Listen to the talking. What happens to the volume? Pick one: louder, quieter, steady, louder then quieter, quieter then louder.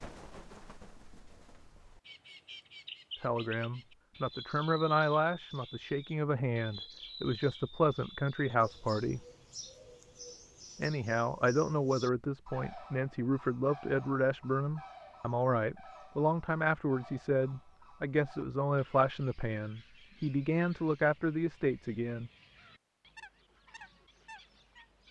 steady.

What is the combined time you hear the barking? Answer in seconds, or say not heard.
not heard.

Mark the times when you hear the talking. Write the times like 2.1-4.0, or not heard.
3.2-9.2, 10.8-22.3.